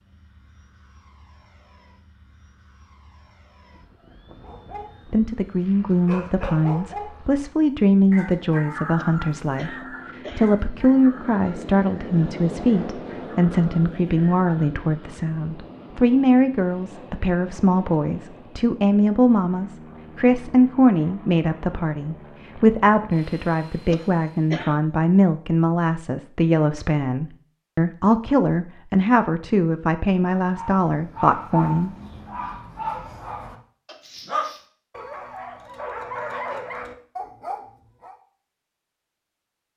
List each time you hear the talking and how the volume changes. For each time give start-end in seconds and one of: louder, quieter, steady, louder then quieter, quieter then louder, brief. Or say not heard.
5.0-31.9 steady.